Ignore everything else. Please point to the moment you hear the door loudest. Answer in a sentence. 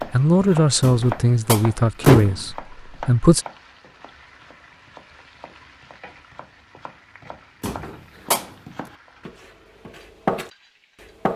The volume of the door peaks at 2 seconds.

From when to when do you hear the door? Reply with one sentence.
You can hear the door from 0.8 to 2.5 s and from 7.6 to 8.5 s.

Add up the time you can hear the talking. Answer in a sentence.
You can hear the talking for 3 seconds altogether.